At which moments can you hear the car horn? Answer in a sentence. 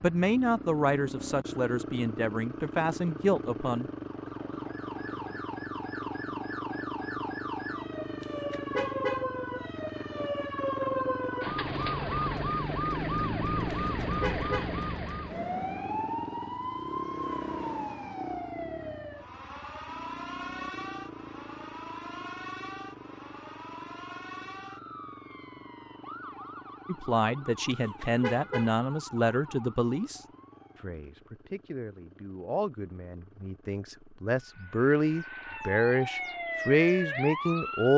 The car horn can be heard from 8.2 to 9.2 s, from 13.7 to 14.7 s and from 27.7 to 28.8 s.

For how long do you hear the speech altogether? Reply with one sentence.
You can hear the speech for 14 seconds altogether.